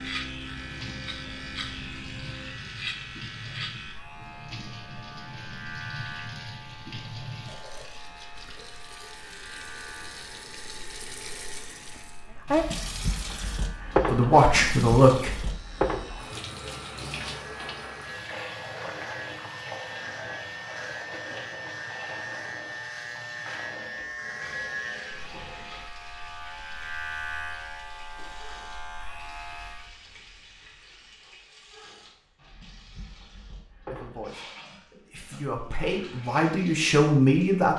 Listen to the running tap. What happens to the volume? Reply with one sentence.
The volume of the running tap goes up, then down.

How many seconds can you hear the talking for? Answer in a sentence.
You can hear the talking for 5 seconds altogether.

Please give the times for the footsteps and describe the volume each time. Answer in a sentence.
The footsteps can't be heard in this clip.